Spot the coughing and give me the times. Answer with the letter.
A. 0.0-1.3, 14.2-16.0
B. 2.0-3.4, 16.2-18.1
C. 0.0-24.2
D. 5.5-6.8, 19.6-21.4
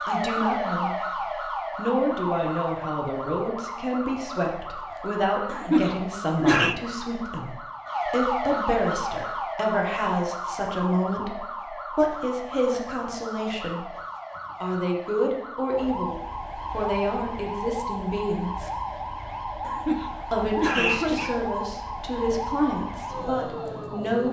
D.